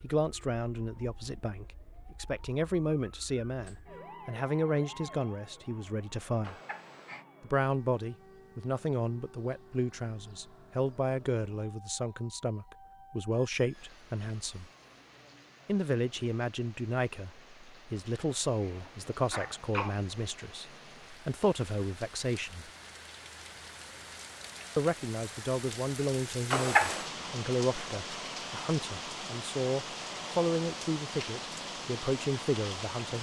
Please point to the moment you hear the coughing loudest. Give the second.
27 s.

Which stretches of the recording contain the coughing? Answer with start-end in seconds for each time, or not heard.
6.4-7.2, 18.2-19.9, 26.5-27.1.